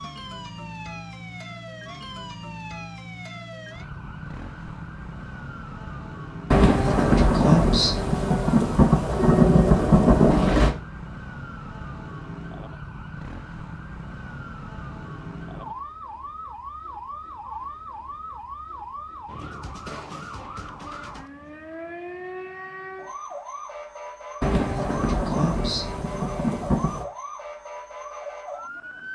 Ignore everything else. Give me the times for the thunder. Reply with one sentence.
You can hear the thunder from 6.5 to 10.8 s and from 24.4 to 27.1 s.